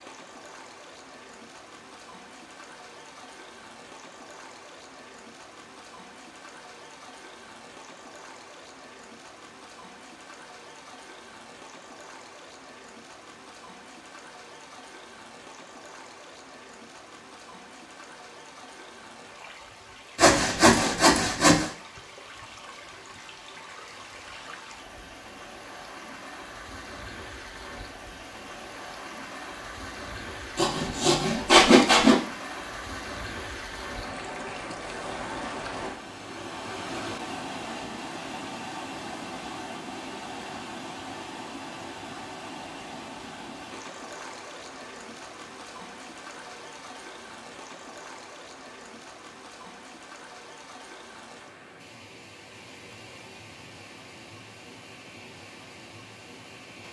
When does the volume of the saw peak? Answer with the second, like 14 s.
32 s.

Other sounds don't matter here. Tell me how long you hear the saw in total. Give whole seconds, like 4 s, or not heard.
3 s.